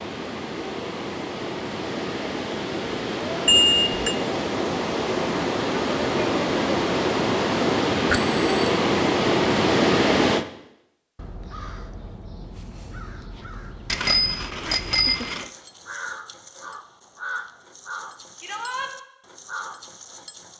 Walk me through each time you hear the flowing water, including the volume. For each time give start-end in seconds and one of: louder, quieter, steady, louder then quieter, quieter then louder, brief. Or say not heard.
0.0-10.4 louder.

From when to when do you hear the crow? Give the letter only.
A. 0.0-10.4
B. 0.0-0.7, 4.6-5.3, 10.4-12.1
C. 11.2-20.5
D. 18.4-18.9
C.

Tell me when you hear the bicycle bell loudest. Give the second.
4 s.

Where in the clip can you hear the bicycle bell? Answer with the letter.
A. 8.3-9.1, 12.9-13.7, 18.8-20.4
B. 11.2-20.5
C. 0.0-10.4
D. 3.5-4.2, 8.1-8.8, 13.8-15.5
D.